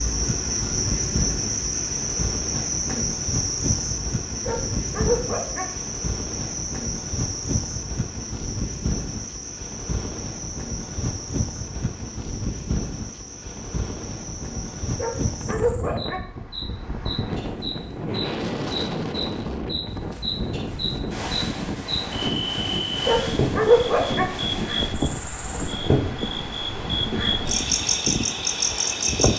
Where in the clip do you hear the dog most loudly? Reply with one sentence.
The volume of the dog peaks at 24 seconds.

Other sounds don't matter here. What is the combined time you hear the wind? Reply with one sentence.
The wind can be heard for 29 seconds in total.